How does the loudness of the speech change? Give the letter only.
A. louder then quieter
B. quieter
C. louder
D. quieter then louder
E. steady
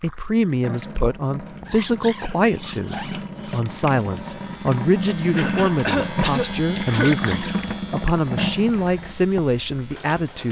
E.